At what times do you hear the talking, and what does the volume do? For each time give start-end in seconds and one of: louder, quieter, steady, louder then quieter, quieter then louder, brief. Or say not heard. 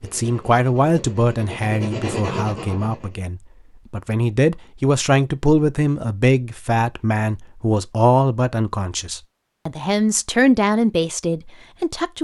0.0-12.1 steady.